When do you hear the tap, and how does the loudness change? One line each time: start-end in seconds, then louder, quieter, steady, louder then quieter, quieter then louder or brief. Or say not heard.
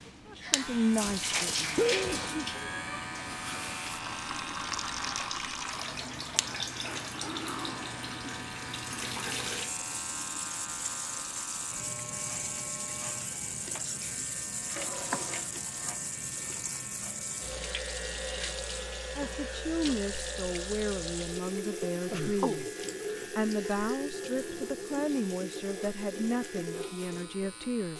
0.0-27.9 steady.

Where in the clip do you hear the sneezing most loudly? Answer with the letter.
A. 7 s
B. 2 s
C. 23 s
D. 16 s
B.